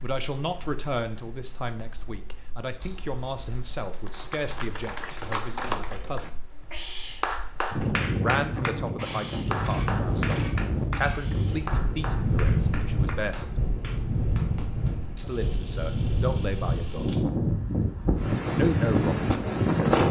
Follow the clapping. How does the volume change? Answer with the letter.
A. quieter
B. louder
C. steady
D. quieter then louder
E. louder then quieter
A.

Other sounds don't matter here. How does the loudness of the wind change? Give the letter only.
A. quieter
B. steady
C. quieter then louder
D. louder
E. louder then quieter
D.